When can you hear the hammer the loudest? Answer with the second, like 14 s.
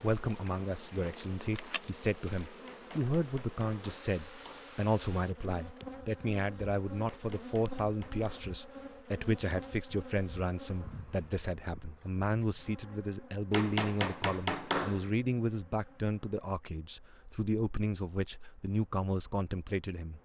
15 s.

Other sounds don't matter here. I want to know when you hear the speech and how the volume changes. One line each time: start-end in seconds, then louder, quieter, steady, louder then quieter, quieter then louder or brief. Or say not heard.
0.0-20.2 steady.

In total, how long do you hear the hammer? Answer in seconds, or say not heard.
5 s.